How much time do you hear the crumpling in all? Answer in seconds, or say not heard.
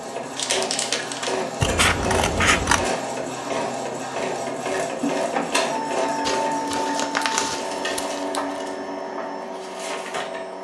3 s.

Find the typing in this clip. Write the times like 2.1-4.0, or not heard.
not heard.